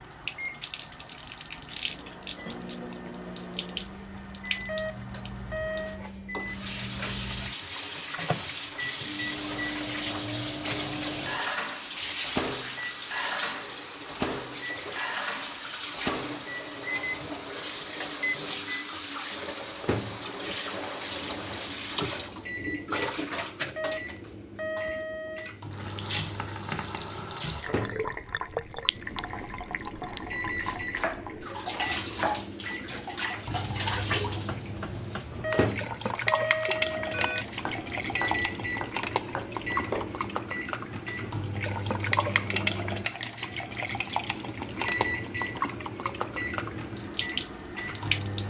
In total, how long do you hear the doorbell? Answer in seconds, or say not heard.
5 s.